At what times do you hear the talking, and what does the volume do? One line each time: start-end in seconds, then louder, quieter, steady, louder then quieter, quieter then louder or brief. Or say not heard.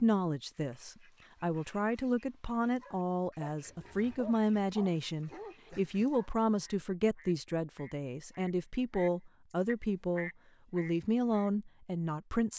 0.0-12.5 steady.